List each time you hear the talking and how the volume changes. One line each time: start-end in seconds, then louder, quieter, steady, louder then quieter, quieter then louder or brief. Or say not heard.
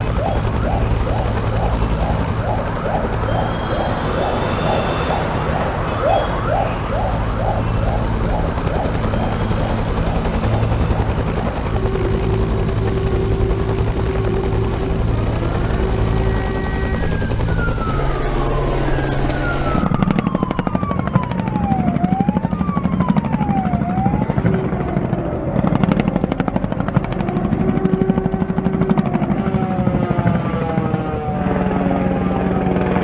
not heard.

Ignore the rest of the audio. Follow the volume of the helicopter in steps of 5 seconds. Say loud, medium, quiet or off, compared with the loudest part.
medium, medium, loud, loud, loud, loud, loud.